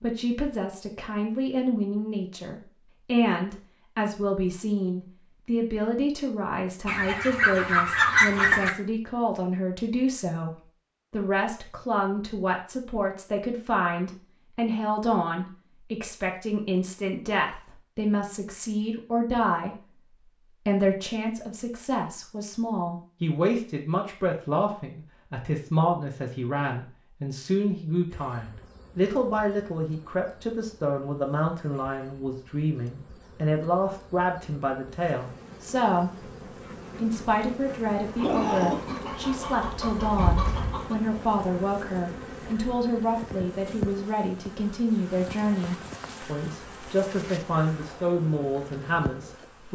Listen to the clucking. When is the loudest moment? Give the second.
8 s.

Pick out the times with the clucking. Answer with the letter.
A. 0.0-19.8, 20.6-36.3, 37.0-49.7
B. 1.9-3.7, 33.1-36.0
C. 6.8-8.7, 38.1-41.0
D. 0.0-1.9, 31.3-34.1
C.